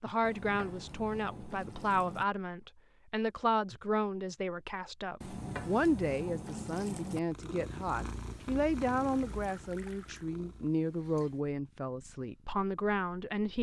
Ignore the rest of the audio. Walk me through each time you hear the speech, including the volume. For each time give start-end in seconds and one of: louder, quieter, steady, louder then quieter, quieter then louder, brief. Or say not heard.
0.0-13.5 steady.